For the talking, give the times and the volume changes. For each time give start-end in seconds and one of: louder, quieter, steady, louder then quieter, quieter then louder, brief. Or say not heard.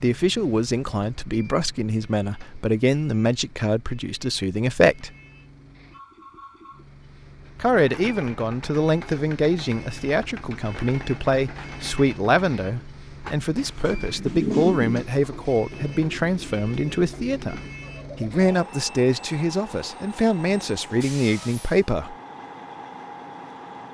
0.0-5.1 steady
7.5-22.1 steady.